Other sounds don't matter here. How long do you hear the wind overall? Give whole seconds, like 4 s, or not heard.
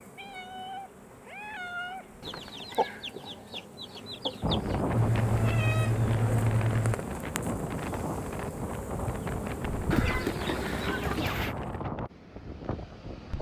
9 s.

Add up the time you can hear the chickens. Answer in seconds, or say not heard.
4 s.